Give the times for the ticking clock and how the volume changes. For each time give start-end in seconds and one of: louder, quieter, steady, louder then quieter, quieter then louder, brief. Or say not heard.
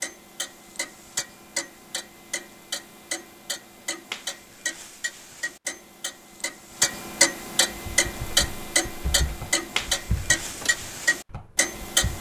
0.0-12.1 louder.